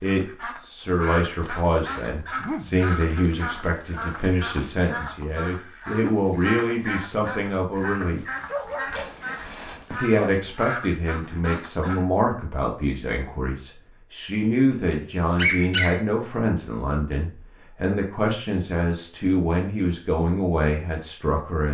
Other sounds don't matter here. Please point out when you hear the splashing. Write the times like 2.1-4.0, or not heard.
8.3-9.8.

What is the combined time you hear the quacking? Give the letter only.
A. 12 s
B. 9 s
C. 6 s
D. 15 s
A.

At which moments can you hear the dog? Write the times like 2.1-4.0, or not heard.
2.4-3.2, 7.7-10.5, 15.2-16.1.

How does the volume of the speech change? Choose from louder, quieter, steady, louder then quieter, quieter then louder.
steady.